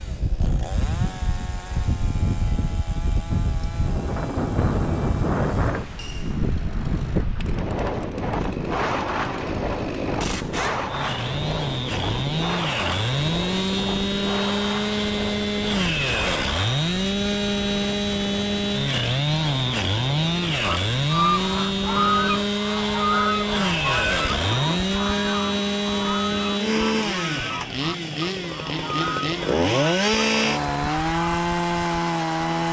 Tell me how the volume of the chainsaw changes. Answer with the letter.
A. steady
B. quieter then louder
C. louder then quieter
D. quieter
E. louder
E.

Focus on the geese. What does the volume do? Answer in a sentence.
The loudness of the geese goes down.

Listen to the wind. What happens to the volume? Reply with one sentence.
The volume of the wind goes down.